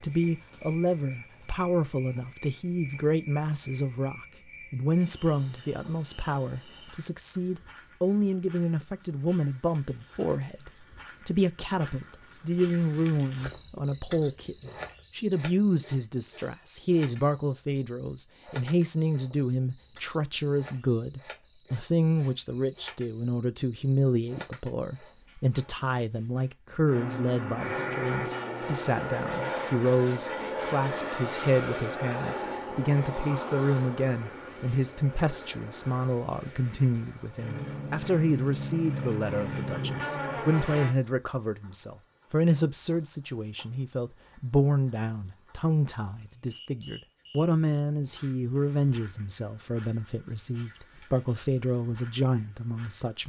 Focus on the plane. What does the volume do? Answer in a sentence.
The loudness of the plane goes down, then up.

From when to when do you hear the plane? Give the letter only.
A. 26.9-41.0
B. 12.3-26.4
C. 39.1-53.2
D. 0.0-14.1
A.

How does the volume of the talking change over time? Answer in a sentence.
The loudness of the talking stays about the same.